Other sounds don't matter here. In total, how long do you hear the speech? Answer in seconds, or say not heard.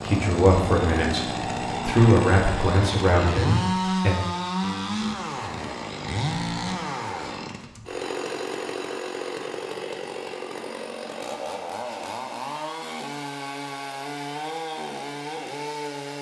4 s.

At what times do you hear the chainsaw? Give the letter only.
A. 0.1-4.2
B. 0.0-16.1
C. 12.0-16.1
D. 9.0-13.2
B.